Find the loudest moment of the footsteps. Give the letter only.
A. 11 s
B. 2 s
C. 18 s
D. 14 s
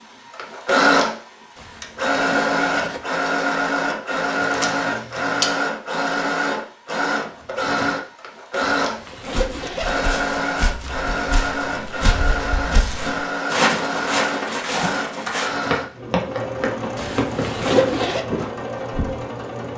D.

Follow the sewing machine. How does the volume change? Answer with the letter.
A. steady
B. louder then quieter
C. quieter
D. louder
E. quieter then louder
C.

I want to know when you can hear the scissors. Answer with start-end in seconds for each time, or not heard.
4.4-5.5.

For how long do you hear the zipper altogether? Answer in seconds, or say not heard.
4 s.